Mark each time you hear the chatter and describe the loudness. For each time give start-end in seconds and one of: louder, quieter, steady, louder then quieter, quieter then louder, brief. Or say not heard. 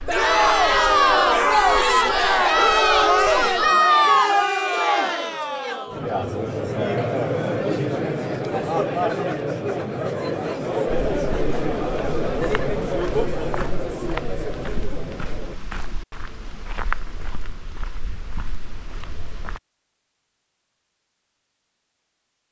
0.0-15.6 quieter.